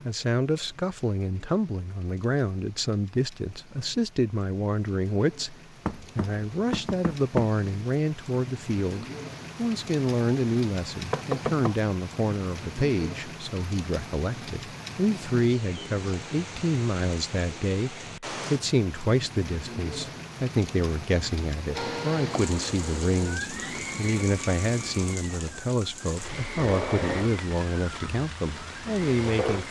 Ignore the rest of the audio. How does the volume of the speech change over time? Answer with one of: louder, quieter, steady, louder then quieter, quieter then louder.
steady.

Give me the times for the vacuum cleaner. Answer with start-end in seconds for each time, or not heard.
21.8-29.6.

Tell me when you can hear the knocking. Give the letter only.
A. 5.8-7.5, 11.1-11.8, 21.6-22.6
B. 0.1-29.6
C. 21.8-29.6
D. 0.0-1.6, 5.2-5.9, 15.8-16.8
A.